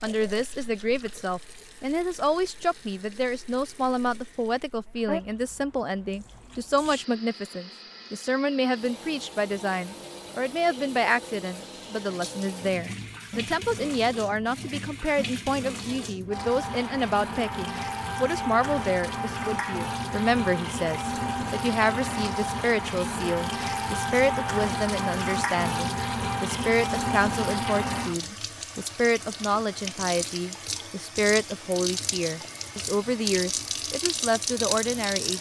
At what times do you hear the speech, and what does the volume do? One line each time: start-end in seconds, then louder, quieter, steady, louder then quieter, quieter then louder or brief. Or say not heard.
0.0-35.3 steady.